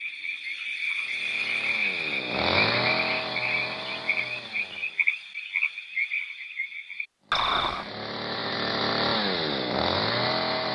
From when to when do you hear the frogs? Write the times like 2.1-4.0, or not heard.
0.0-7.9.